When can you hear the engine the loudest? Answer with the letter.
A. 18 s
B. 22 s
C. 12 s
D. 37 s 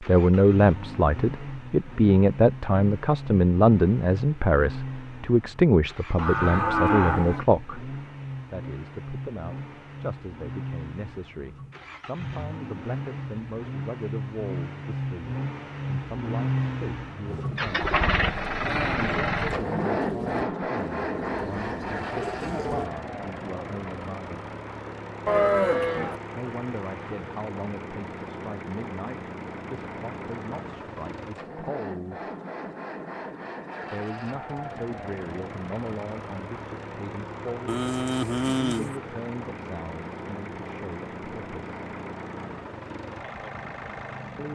A.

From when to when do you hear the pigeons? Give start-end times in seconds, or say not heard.
17.2-22.9.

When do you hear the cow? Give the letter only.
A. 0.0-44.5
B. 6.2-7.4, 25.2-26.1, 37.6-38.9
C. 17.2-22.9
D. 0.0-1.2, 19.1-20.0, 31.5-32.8
B.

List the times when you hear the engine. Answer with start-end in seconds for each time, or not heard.
0.0-44.5.